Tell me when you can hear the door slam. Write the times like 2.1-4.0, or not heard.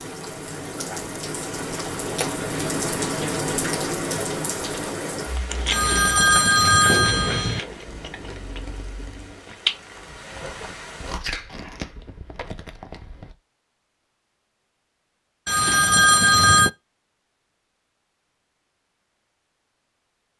not heard.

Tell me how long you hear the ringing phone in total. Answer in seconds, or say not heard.
3 s.